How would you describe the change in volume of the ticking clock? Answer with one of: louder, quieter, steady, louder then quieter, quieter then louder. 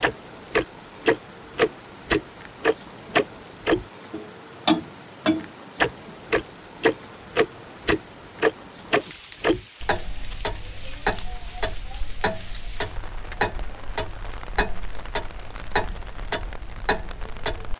quieter.